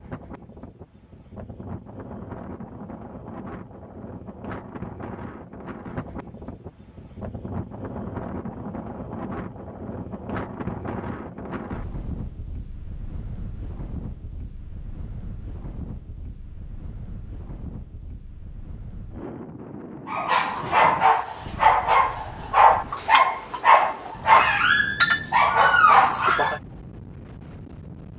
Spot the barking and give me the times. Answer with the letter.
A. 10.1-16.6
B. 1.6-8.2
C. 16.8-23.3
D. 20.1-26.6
D.